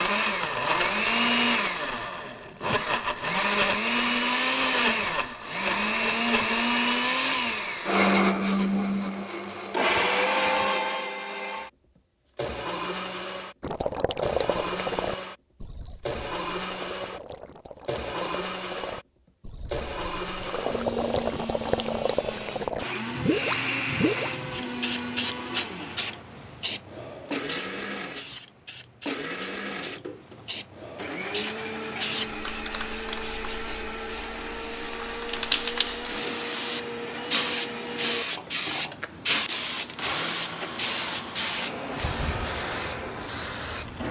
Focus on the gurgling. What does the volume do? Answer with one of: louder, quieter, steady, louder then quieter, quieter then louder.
quieter then louder.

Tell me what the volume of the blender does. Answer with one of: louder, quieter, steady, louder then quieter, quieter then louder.
quieter.